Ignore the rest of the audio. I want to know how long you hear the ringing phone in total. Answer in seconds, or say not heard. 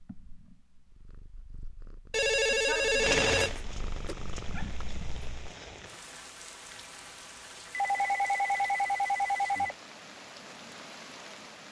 4 s.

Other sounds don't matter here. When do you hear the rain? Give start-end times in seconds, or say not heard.
3.0-11.6.